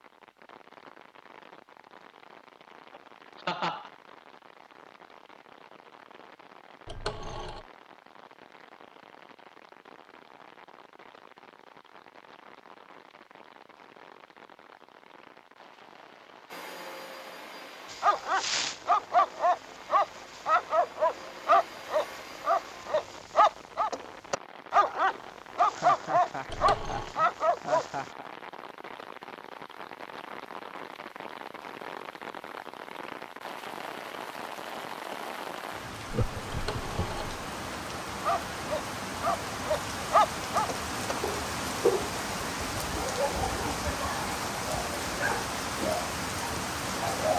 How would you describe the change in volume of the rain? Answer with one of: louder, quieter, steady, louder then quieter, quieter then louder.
louder.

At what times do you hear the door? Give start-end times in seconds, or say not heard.
not heard.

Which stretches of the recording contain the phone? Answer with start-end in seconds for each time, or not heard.
6.8-7.7, 26.4-27.1, 36.5-37.4.